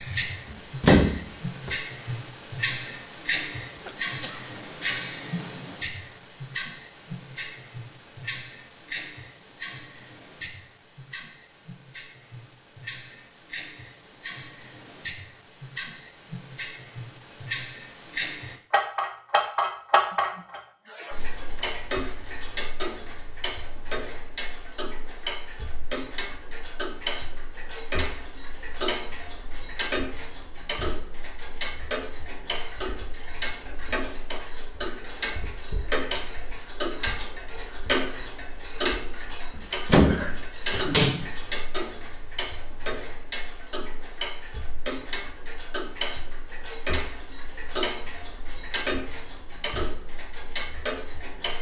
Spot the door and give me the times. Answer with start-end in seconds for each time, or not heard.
0.5-1.8, 39.5-41.3.